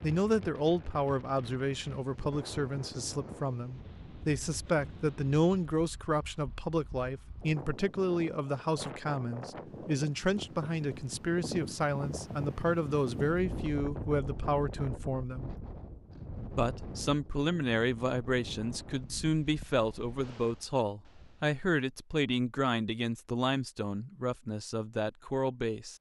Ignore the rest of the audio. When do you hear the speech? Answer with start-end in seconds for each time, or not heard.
0.0-15.6, 16.5-25.9.